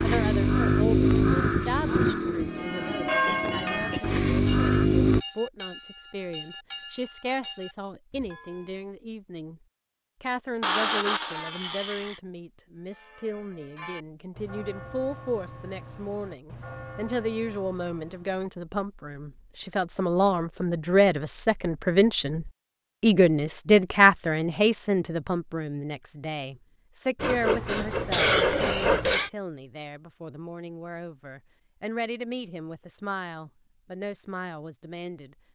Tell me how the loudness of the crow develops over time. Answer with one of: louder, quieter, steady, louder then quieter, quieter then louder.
quieter then louder.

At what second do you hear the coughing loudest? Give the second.
28 s.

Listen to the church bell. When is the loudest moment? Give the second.
3 s.